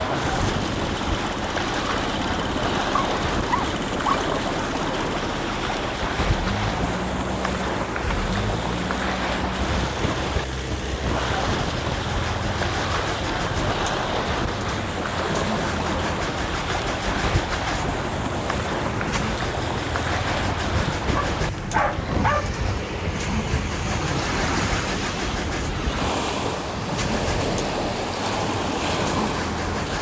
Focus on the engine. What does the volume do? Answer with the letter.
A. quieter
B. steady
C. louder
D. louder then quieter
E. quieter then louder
B.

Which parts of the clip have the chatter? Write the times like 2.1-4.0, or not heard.
not heard.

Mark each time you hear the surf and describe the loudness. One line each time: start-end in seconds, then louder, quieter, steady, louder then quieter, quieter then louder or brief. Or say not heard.
0.0-29.9 steady.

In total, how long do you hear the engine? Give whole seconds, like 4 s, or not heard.
30 s.